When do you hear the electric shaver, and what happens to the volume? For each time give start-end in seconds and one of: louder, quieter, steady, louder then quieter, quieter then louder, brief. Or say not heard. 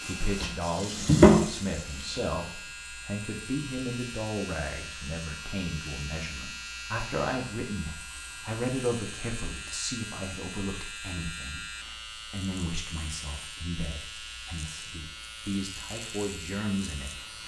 0.0-17.4 steady.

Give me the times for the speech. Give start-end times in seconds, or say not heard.
0.1-17.4.